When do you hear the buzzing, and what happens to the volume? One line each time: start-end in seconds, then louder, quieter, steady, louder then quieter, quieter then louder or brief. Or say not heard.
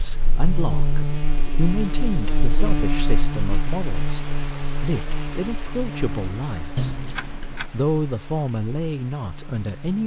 0.0-10.0 quieter.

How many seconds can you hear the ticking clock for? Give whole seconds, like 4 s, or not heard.
not heard.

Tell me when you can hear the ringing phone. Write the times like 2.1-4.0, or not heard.
6.8-7.7.